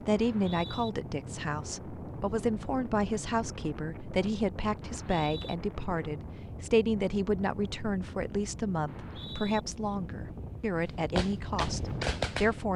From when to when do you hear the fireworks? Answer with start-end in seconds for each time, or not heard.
11.2-12.7.